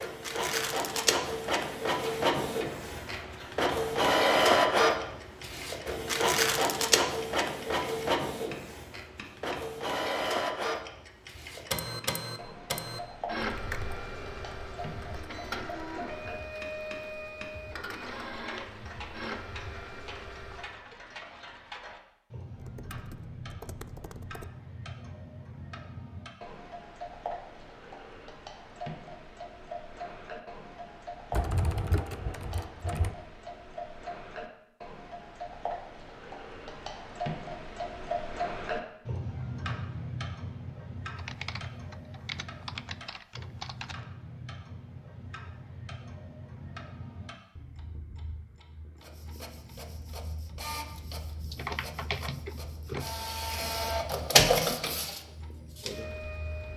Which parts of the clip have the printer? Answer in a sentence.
The printer can be heard from 0.0 to 20.8 s and from 49.0 to 56.7 s.